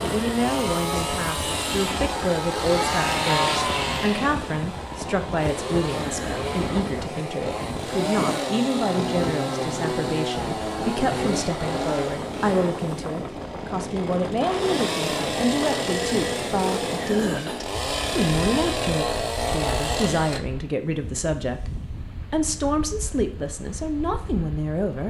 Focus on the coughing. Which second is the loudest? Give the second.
17 s.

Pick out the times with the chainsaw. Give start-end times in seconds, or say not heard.
0.0-20.4.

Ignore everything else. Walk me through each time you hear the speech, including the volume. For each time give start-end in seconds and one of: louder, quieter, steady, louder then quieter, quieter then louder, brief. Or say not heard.
0.0-25.0 steady.